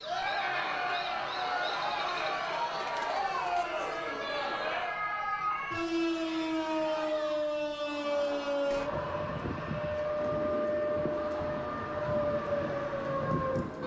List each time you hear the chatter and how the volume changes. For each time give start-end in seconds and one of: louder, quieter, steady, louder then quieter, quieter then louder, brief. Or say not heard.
0.0-13.8 quieter.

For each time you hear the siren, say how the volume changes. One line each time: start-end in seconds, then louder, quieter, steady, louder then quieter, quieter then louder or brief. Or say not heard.
0.0-13.8 louder.